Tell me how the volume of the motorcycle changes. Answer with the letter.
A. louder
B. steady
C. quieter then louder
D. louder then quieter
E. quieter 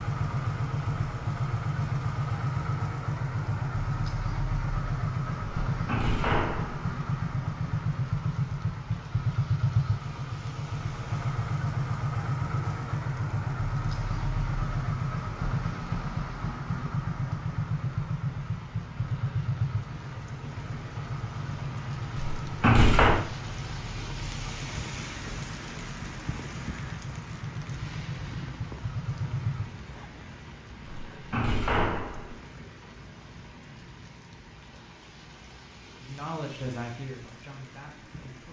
E.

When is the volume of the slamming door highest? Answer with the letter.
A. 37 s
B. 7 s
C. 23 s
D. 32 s
C.